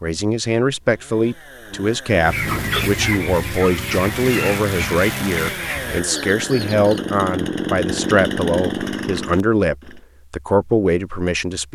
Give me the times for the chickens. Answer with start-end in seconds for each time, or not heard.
2.2-6.8.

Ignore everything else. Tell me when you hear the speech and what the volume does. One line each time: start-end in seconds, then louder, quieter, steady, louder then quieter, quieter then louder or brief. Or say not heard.
0.0-11.7 steady.